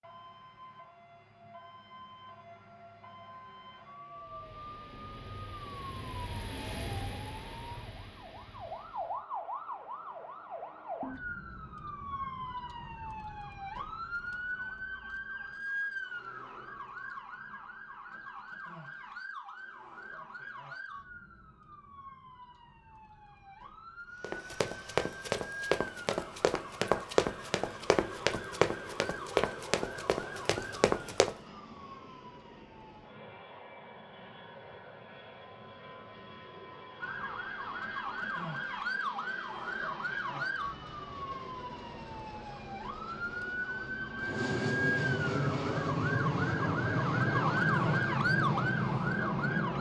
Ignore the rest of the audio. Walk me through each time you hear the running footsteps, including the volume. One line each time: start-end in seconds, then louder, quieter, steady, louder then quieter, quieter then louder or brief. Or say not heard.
24.2-31.4 steady.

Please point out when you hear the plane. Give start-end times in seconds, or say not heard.
4.2-9.2, 24.1-49.7.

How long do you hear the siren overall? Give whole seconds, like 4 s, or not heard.
46 s.